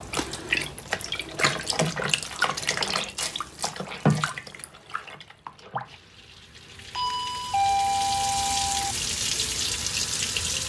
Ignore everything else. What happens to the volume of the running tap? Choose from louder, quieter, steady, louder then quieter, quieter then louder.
quieter then louder.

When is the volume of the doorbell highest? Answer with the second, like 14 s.
8 s.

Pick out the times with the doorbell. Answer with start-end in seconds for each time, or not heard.
6.9-8.9.